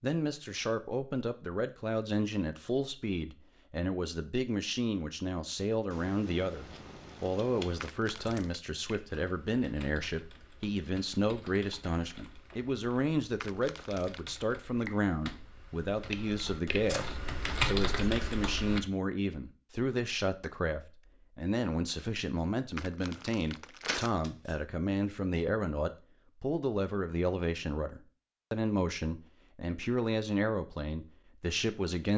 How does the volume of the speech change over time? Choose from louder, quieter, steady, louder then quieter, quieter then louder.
steady.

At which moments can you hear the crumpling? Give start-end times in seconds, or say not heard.
7.8-8.6, 13.4-14.3, 22.8-24.1.